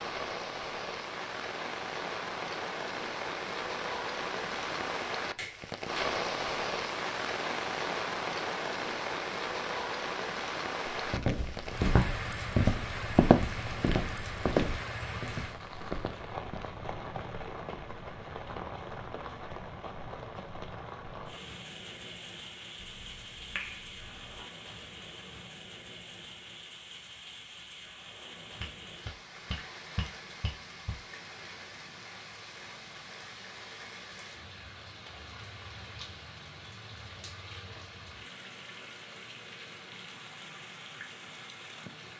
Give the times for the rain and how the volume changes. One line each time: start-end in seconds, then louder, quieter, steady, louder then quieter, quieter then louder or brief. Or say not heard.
0.0-42.1 quieter.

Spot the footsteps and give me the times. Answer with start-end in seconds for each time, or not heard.
11.1-16.8.